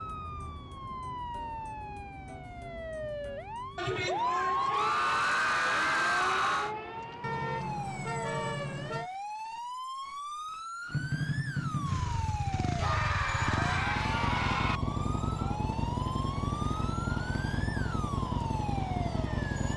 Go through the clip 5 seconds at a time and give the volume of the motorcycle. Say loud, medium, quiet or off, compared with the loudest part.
off, off, loud, loud.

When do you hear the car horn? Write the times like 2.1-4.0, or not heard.
7.2-9.1.